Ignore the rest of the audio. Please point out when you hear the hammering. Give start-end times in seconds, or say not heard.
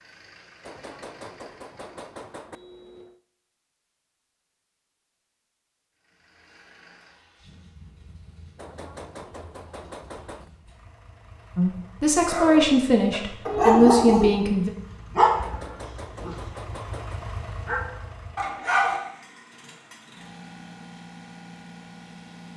0.6-3.2, 8.6-10.5, 15.4-17.2.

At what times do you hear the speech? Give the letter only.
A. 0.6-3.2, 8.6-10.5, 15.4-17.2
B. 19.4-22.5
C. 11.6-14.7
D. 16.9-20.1
C.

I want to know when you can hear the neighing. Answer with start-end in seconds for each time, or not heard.
not heard.